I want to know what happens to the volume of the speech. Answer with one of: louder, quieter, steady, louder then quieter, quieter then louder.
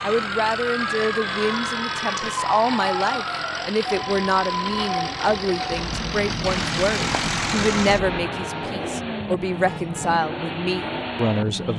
steady.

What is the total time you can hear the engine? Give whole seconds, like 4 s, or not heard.
12 s.